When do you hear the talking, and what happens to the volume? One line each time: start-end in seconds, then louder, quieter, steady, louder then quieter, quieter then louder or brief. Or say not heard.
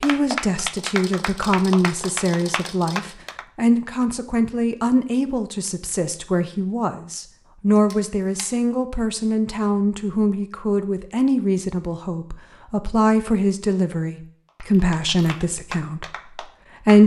0.0-17.0 steady.